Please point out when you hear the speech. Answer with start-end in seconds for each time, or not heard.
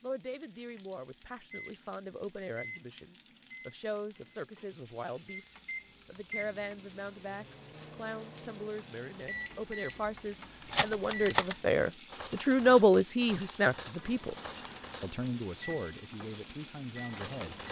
0.0-14.3, 15.0-17.6.